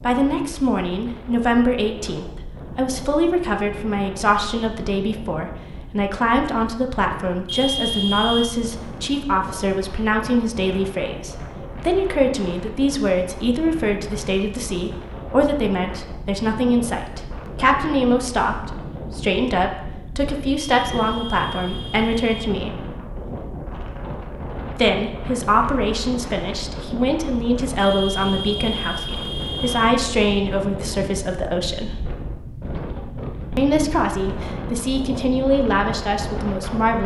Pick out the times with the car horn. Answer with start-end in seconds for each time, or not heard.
7.5-8.5, 20.7-22.5, 27.8-29.9.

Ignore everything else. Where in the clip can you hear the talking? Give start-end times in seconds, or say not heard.
0.0-22.9, 24.7-32.0, 33.5-37.0.